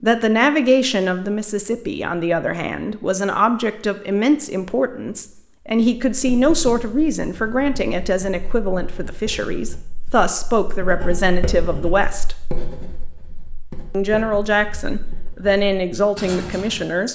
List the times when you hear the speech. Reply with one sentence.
You can hear the speech from 0.0 to 12.3 s and from 13.9 to 17.0 s.